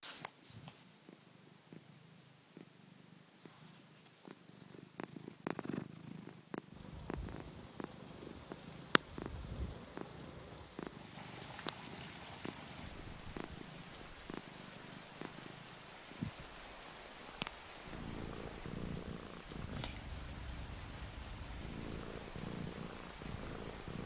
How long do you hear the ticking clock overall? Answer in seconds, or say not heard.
not heard.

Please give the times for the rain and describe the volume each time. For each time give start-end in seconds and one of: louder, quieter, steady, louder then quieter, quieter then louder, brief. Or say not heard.
6.7-24.0 steady.